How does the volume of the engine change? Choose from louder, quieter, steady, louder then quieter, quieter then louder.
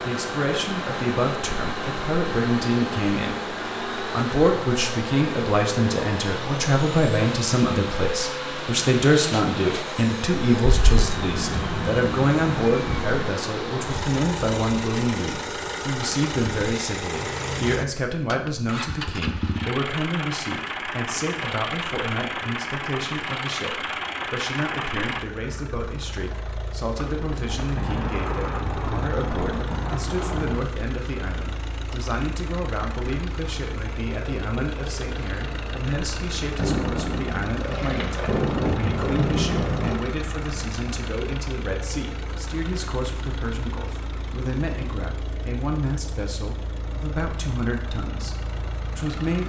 quieter.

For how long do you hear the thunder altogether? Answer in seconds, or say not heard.
10 s.